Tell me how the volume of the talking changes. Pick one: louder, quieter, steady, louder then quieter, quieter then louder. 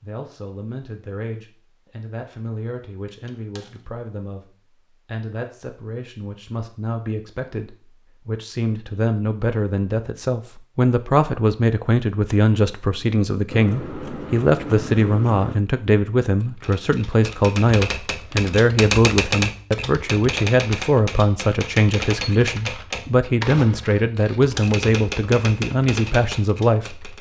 louder.